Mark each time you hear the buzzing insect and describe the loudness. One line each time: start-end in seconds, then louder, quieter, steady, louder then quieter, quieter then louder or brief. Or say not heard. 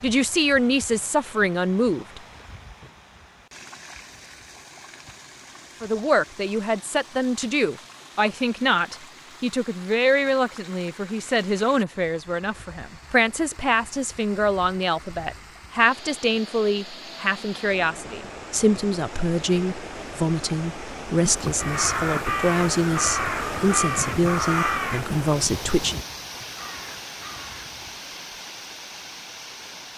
not heard.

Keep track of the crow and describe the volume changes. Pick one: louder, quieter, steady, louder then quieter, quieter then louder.
quieter.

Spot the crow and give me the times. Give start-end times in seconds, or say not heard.
21.2-28.0.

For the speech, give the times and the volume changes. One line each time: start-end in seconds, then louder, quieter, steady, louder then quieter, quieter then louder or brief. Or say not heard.
0.0-2.2 brief
5.8-26.0 steady.